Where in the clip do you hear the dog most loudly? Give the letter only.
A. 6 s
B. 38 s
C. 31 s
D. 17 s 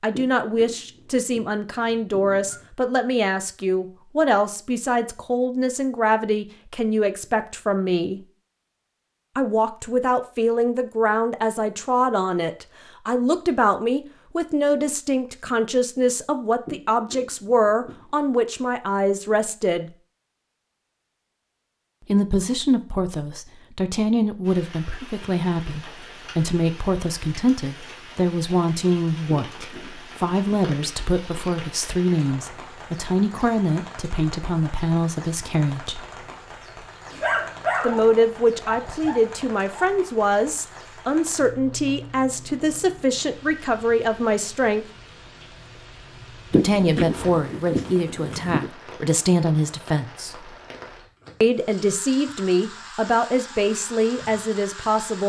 B.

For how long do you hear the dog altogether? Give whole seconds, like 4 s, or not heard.
3 s.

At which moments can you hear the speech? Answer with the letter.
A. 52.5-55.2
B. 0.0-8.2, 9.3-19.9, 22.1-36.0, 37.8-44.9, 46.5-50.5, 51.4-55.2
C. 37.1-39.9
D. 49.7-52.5
B.